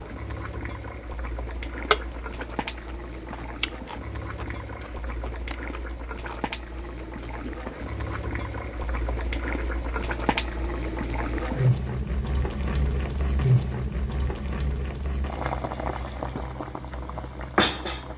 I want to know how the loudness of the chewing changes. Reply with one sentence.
The volume of the chewing goes up, then down.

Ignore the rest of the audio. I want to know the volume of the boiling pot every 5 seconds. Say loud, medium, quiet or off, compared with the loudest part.
medium, medium, loud, loud.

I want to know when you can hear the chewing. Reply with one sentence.
You can hear the chewing from 1.7 to 8.1 s.